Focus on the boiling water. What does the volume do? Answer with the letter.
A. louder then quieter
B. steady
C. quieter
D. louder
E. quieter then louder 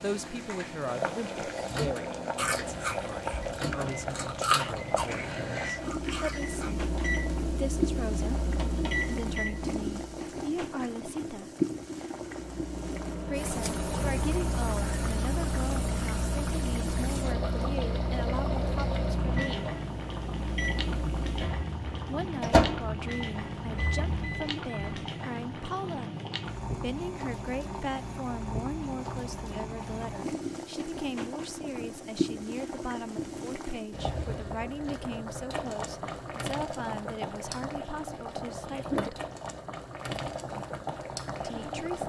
B.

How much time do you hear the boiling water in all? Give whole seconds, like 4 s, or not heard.
42 s.